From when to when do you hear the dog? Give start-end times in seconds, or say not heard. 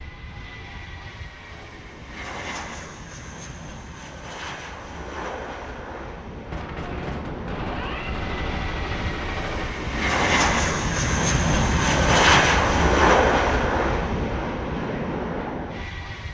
not heard.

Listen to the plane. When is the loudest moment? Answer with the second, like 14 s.
13 s.